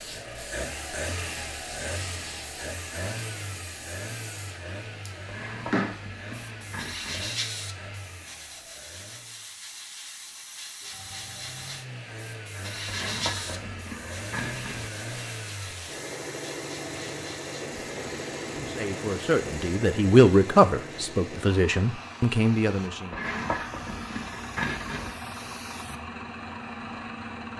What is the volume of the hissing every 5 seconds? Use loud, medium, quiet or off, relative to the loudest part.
medium, loud, loud, medium, medium, medium.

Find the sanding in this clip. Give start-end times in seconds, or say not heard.
5.2-7.3, 12.8-14.9, 23.1-25.1.